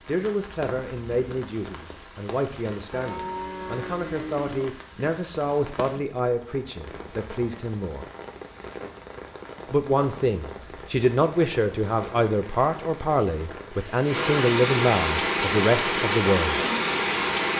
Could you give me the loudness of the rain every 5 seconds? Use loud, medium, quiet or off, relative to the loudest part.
quiet, quiet, medium, loud.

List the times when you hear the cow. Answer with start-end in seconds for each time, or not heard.
2.9-4.5.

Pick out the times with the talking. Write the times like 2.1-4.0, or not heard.
0.1-8.1, 9.7-16.6.